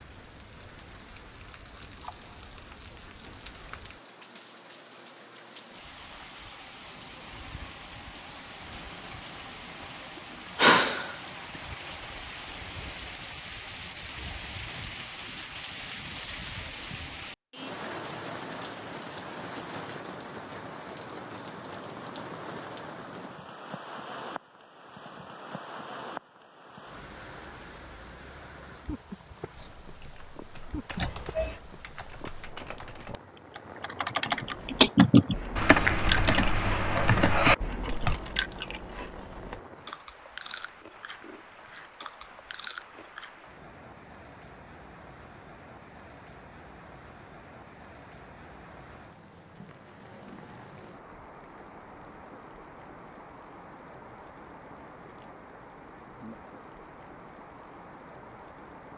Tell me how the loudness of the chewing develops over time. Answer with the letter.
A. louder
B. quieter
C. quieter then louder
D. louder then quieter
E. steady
B.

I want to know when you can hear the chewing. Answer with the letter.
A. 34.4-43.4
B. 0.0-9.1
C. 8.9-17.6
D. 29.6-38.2
A.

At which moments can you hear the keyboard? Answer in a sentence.
You can hear the keyboard from 29.6 to 38.2 s.